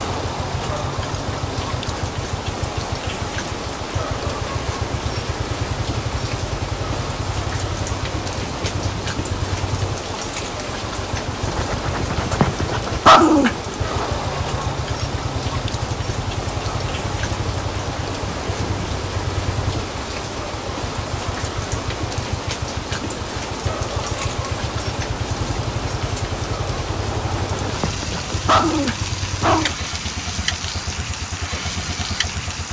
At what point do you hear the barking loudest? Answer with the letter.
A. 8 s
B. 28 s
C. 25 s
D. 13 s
D.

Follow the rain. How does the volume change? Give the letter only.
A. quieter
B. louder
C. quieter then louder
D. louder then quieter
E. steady
E.